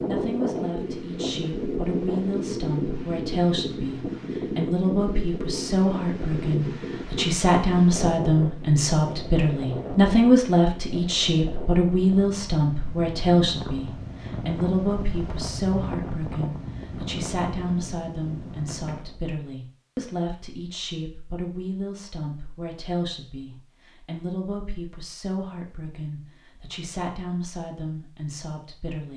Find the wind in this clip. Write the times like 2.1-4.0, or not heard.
0.0-19.4.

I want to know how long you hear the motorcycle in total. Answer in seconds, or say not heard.
not heard.